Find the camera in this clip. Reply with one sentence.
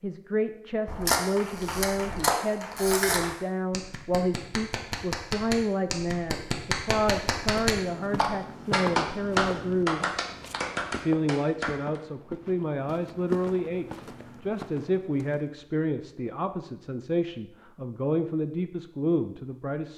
The camera can be heard from 0.8 to 3.2 s.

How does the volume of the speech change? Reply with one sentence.
The loudness of the speech stays about the same.